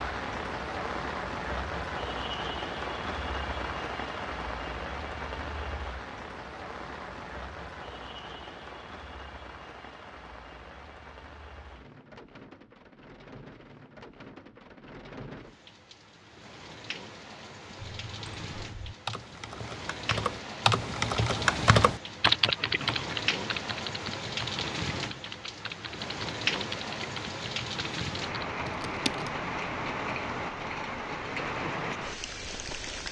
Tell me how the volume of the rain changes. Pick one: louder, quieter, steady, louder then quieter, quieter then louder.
quieter then louder.